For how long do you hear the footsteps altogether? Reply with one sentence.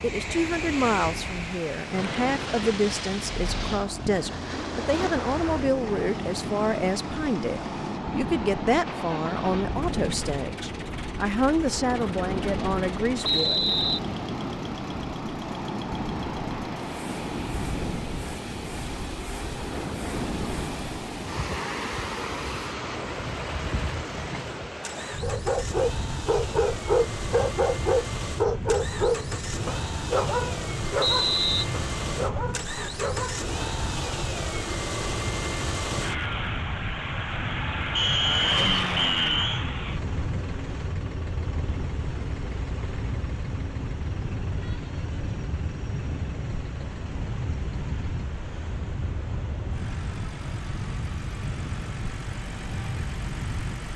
The footsteps can't be heard in this clip.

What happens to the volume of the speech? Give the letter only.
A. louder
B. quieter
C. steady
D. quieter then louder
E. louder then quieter
C.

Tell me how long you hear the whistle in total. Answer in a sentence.
You can hear the whistle for 3 seconds altogether.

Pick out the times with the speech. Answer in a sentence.
You can hear the speech from 0.0 to 13.7 s.